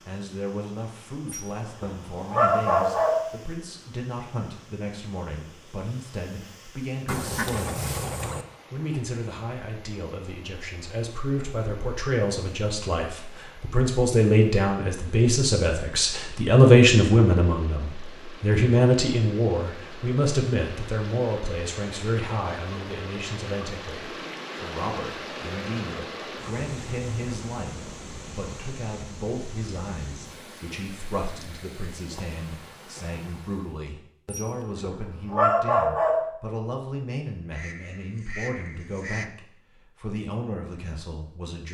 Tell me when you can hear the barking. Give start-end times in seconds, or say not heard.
1.2-3.2, 34.3-36.2.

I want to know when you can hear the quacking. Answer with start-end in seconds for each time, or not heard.
7.0-8.4, 37.5-39.3.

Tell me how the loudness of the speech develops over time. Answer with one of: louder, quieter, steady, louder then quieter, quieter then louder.
louder then quieter.